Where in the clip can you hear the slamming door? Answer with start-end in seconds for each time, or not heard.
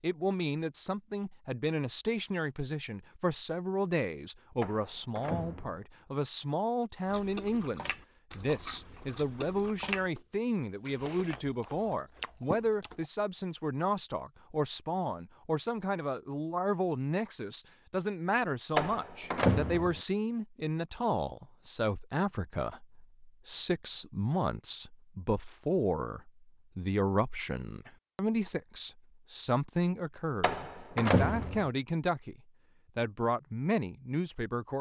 4.6-5.8, 18.8-20.0, 30.4-31.7.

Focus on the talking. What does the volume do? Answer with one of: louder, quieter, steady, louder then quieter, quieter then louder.
steady.